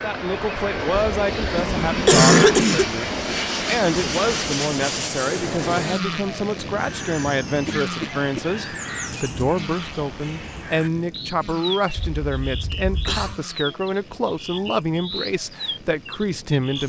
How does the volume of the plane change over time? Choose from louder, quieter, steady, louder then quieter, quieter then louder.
quieter.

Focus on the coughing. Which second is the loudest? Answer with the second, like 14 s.
2 s.